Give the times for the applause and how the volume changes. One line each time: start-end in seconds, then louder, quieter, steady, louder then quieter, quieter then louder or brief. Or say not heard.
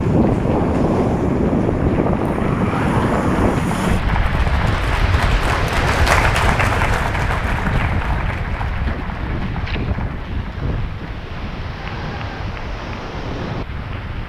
0.0-14.2 louder then quieter.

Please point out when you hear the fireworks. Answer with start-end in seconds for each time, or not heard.
not heard.